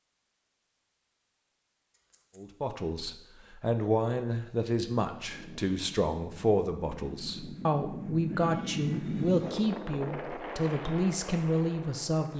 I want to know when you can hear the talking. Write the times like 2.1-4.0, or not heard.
2.4-12.3.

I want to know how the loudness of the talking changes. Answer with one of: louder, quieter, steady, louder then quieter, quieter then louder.
steady.